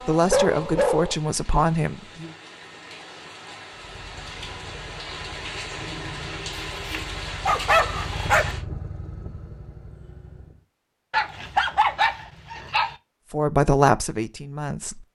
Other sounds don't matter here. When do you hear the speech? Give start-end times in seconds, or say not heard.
0.1-2.3, 13.3-14.9.